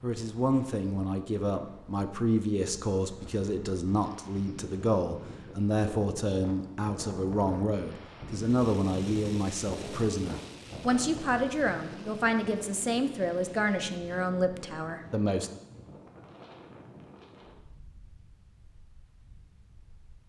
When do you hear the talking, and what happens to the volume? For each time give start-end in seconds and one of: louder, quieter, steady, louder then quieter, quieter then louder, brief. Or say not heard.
0.0-15.5 steady.